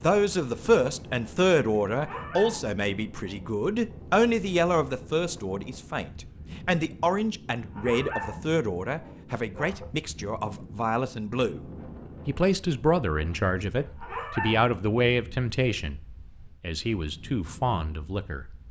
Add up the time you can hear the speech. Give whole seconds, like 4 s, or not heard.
18 s.